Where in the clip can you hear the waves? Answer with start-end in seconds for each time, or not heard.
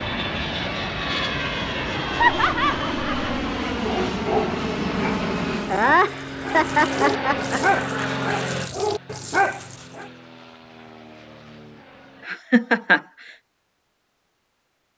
not heard.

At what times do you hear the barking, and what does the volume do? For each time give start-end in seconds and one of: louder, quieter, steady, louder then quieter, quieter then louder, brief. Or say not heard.
3.8-10.1 quieter then louder.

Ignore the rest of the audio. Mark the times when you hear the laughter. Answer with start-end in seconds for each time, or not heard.
2.2-3.4, 5.7-7.6, 12.2-13.0.